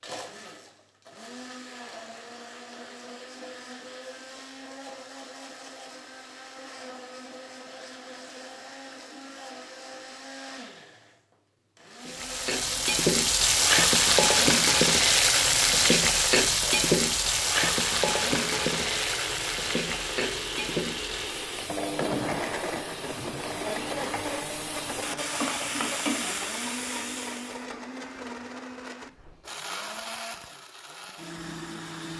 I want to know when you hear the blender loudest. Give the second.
22 s.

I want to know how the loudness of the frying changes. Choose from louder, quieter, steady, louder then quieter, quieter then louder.
quieter then louder.